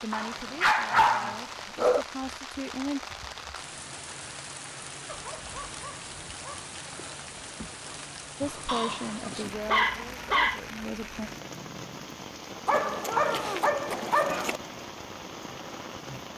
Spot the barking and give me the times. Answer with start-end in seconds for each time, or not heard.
0.1-2.0, 5.0-6.7, 8.7-10.6, 12.7-14.6.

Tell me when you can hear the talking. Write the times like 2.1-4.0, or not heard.
0.0-3.0, 8.4-11.3.